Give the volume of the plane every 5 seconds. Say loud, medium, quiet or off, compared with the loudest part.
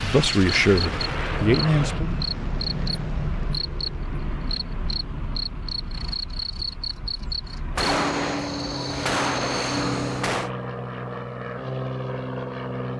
loud, medium, loud.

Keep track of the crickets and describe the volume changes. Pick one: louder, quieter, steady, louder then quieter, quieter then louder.
steady.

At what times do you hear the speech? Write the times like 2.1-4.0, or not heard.
0.0-2.1.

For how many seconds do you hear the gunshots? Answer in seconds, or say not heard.
3 s.